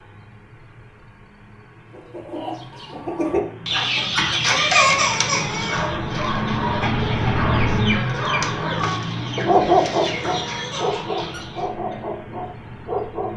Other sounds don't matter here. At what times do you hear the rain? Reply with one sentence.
You can't hear the rain here.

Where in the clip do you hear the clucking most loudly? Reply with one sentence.
The loudest moment of the clucking is at 5 seconds.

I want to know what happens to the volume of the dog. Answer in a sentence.
The volume of the dog goes up, then down.